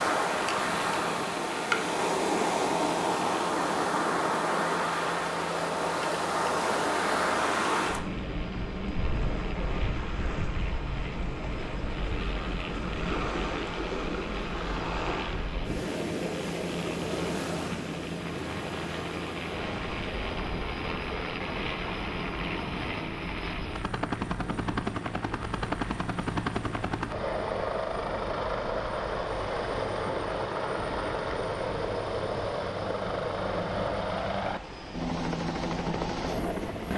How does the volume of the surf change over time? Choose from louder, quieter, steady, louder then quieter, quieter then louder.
quieter.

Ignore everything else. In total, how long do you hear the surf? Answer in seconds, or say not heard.
37 s.